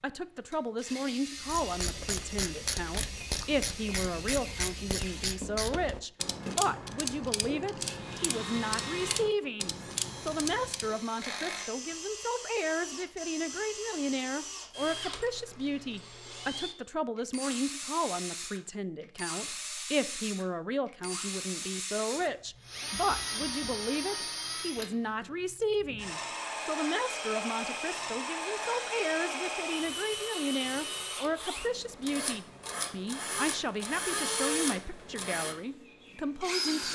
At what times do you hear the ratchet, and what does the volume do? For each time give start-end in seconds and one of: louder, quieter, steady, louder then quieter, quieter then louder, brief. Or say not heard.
1.4-10.9 steady.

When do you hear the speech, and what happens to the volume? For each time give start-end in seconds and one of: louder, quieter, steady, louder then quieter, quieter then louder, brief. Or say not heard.
0.0-36.9 steady.